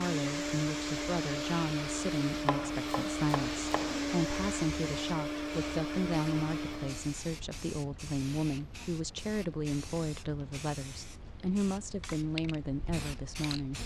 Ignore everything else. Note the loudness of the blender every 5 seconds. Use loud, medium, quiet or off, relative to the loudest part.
loud, loud, off.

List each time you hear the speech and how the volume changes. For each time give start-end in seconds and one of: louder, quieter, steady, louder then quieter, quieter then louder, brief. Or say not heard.
0.0-13.8 steady.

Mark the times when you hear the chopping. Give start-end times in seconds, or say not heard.
2.5-4.0.